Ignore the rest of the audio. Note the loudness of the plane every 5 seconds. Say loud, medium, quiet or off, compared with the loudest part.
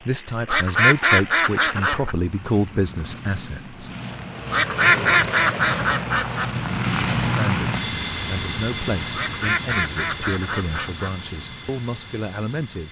medium, loud, medium.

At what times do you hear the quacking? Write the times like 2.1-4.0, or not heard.
0.5-2.1, 4.5-6.5, 9.2-11.1.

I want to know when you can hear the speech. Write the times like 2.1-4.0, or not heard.
0.1-3.9, 7.2-12.8.